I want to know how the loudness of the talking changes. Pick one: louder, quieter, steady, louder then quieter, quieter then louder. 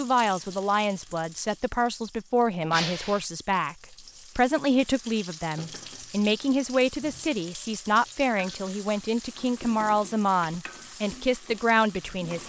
steady.